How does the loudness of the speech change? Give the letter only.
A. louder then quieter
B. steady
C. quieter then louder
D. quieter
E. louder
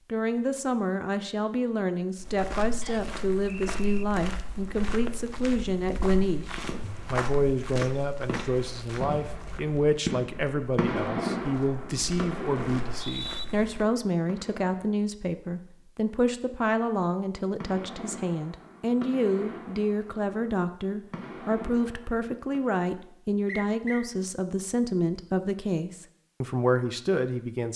B.